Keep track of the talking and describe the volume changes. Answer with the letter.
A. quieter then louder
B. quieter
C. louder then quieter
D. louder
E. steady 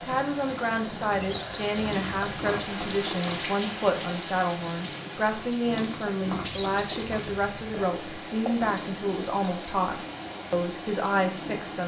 E.